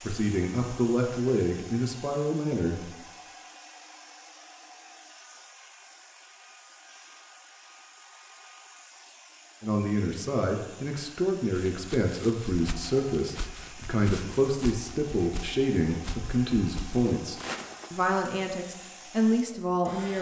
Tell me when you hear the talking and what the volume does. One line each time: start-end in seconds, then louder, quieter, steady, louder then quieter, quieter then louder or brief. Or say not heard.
0.0-3.0 brief
9.6-20.1 steady.